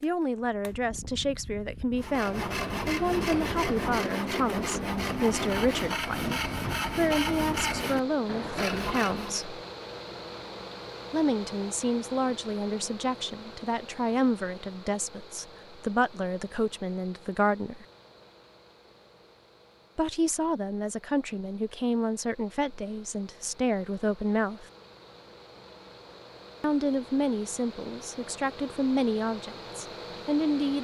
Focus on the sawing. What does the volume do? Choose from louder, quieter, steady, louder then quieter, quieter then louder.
steady.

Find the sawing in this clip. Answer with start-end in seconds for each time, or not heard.
1.9-9.4.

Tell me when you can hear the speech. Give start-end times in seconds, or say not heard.
0.0-9.6, 11.1-17.9, 19.9-24.6, 26.6-30.7.